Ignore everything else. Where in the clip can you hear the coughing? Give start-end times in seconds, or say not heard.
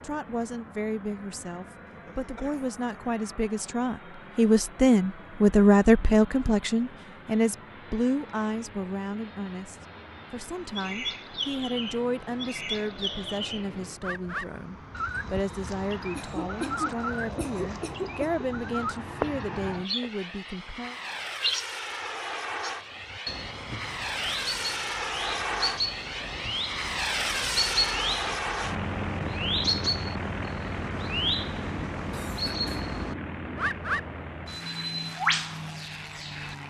2.0-2.8, 16.1-18.4, 32.1-32.9.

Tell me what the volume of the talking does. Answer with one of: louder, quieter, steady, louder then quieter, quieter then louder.
louder then quieter.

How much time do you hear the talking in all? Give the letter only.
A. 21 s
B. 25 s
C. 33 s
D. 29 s
A.